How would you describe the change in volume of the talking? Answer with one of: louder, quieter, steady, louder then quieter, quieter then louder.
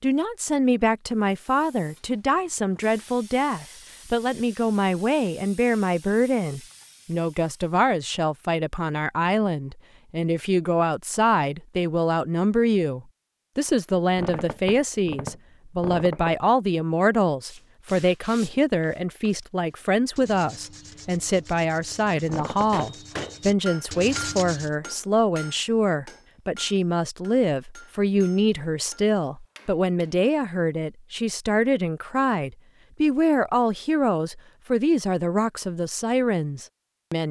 steady.